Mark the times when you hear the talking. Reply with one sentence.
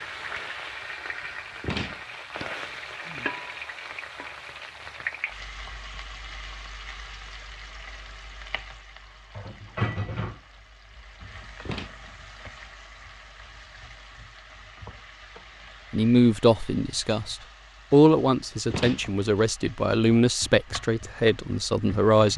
You can hear the talking from 15.9 to 22.3 s.